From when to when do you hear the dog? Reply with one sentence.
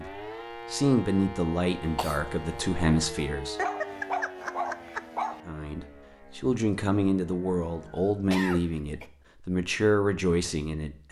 The dog can be heard from 3.5 to 5.4 s.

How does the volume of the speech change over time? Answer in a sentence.
The loudness of the speech stays about the same.